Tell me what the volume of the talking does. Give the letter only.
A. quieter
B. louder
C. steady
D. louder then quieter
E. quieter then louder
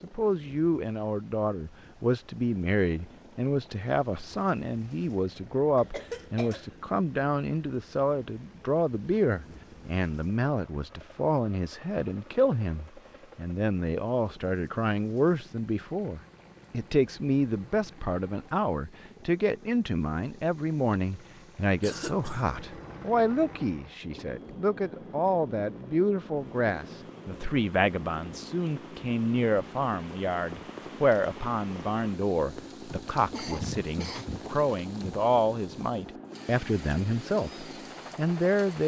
C.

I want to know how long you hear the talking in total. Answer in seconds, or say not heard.
39 s.